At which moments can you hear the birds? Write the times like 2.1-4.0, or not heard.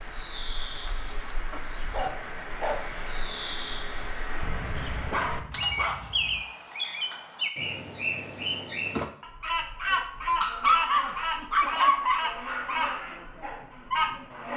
0.0-14.5.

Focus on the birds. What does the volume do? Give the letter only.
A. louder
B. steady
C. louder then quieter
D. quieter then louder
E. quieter
A.